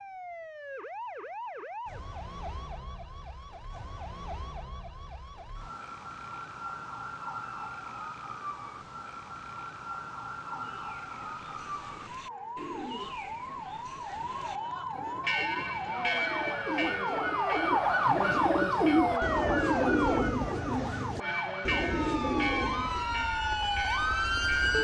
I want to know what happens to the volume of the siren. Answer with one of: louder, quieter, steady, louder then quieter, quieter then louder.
louder.